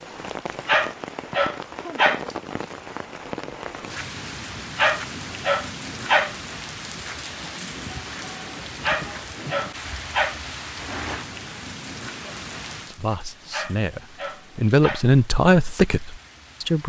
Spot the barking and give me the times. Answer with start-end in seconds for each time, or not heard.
0.7-2.2, 4.8-6.3, 8.8-10.4, 13.5-15.1.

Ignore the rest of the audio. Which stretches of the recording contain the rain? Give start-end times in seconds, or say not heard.
0.0-16.8.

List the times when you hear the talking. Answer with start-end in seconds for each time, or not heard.
12.8-16.8.